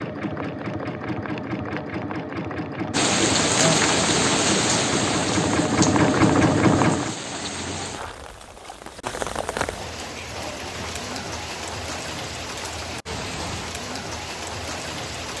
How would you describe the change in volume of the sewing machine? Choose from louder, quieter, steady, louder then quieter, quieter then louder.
louder.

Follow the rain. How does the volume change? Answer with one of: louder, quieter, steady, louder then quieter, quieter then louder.
quieter.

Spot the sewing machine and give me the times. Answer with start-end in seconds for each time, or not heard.
0.0-7.2.